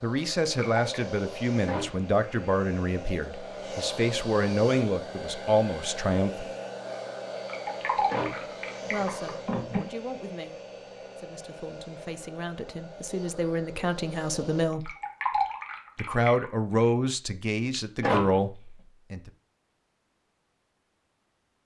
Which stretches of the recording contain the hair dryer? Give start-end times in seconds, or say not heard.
0.0-14.7.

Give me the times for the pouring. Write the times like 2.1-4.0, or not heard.
0.4-1.0, 7.3-9.3, 14.7-16.5.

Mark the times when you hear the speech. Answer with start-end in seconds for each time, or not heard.
0.0-6.5, 8.9-10.6, 11.2-14.9, 15.9-19.3.